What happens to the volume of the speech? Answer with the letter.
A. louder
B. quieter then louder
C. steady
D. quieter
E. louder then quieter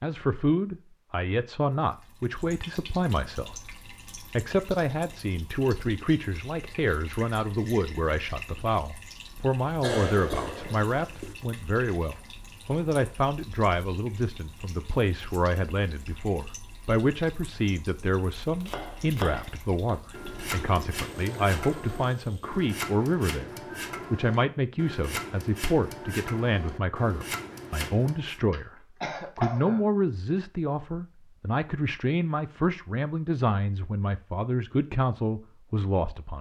C.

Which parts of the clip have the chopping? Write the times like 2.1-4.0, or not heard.
18.6-28.4.